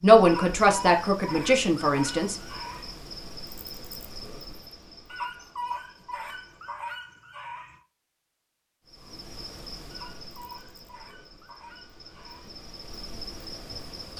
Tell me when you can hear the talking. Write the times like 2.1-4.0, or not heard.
0.0-2.4.